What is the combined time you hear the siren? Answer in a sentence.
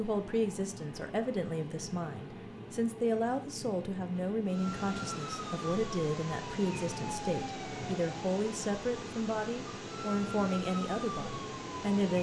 The siren can be heard for 8 seconds in total.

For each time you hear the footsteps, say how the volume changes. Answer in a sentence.
You can't hear the footsteps here.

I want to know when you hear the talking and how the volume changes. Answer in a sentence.
You can hear the talking from 0.0 to 12.1 s, at a steady volume.